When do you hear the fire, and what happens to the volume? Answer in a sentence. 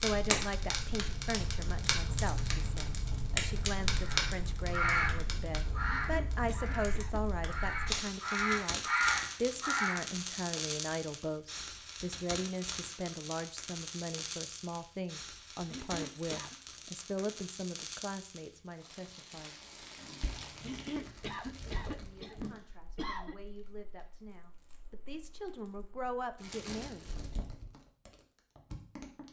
The fire can be heard from 0.0 to 29.2 s, getting quieter.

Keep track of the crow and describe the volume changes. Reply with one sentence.
The volume of the crow goes down, then up.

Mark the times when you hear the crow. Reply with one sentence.
The crow can be heard from 4.0 to 10.1 s.